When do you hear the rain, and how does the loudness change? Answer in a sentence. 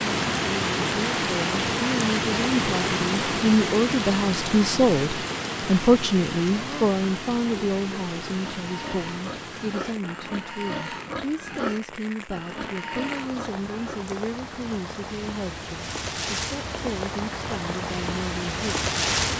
You can hear the rain from 0.0 to 19.3 s, getting quieter then louder.